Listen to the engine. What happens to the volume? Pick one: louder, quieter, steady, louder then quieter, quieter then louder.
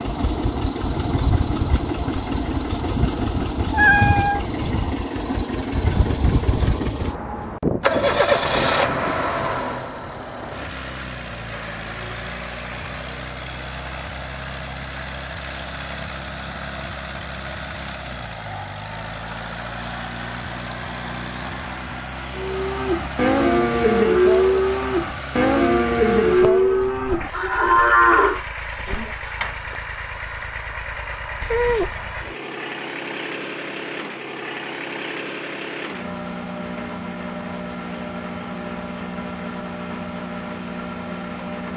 quieter.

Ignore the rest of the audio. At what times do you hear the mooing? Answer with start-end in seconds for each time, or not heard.
22.4-29.1.